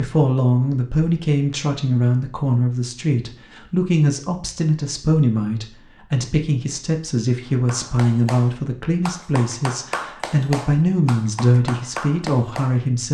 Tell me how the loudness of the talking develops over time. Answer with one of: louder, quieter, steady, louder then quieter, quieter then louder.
steady.